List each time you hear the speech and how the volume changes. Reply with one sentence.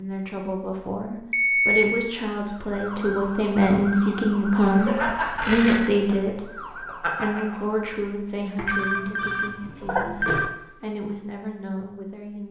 The speech can be heard from 0.0 to 12.4 s, getting louder then quieter.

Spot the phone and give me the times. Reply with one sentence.
You can hear the phone from 1.3 to 1.9 s, from 5.0 to 5.9 s and from 8.6 to 10.5 s.